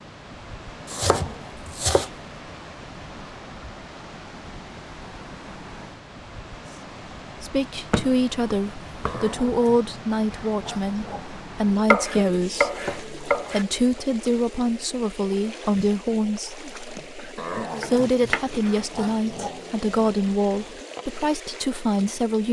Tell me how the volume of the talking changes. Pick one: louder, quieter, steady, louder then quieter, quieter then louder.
steady.